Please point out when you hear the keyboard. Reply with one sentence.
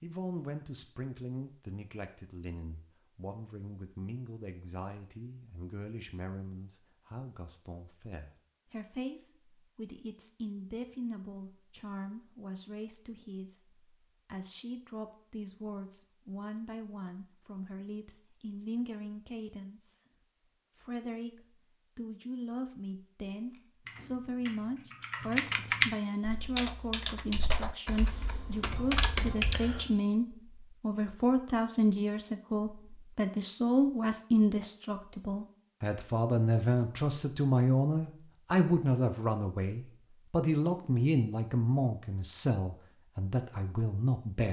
You can hear the keyboard from 23.5 to 29.9 s.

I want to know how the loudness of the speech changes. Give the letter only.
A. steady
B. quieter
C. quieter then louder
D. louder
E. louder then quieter
D.